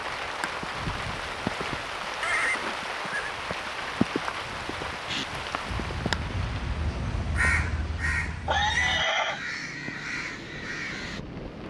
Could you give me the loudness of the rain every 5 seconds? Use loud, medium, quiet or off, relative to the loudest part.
loud, medium, medium.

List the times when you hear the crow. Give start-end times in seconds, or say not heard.
5.0-11.2.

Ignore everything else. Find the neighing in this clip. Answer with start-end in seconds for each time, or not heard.
2.2-3.4, 8.4-9.4.